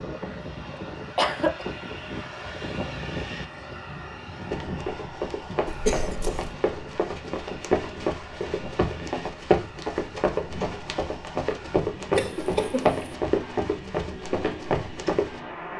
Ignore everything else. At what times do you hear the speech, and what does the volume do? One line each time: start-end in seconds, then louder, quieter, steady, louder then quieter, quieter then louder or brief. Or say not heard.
not heard.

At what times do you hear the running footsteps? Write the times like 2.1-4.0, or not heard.
4.5-15.4.